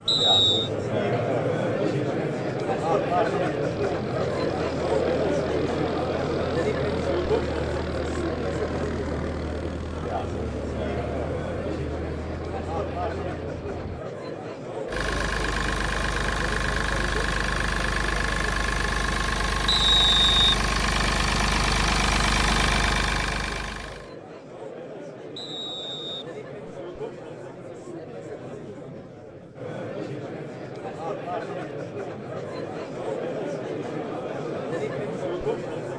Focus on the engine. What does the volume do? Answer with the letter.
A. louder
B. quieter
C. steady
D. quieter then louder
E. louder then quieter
A.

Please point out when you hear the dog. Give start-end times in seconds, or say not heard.
not heard.